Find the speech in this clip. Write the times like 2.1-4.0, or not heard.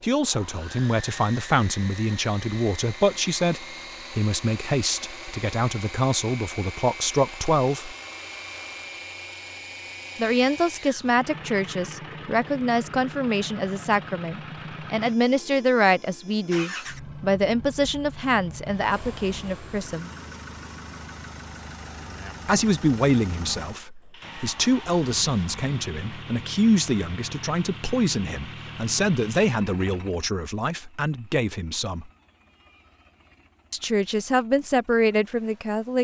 0.0-8.0, 10.2-20.1, 22.4-32.1, 33.7-35.9.